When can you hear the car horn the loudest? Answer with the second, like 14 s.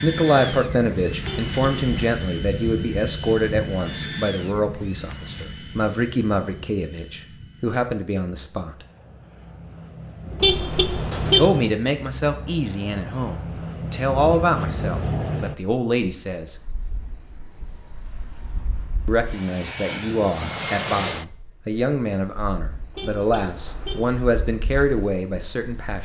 11 s.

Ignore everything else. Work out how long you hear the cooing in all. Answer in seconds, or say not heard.
not heard.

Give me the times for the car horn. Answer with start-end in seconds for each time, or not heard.
1.2-2.0, 10.4-11.5, 22.9-24.1.